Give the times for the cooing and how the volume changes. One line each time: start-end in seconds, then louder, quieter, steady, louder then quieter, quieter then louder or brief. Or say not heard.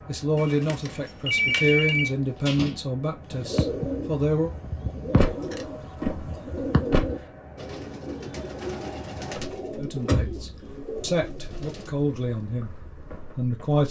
3.2-11.9 quieter.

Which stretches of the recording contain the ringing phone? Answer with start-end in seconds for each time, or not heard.
0.3-2.1.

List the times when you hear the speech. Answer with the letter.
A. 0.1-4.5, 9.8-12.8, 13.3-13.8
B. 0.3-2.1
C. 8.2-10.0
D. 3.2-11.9
A.